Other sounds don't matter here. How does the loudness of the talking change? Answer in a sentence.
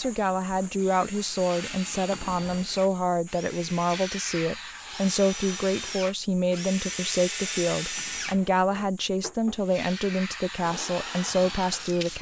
The volume of the talking stays about the same.